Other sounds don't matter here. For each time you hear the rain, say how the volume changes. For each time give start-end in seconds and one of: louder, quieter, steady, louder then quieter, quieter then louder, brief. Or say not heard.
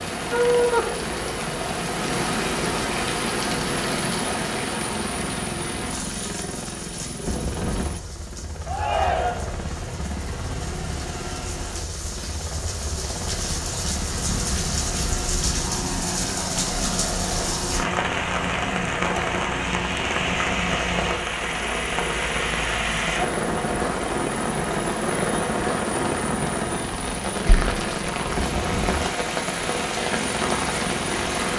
0.0-31.5 quieter then louder.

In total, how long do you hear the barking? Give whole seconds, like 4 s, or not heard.
not heard.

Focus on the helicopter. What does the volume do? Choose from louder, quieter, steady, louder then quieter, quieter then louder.
steady.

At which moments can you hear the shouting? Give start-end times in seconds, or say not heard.
8.7-9.6.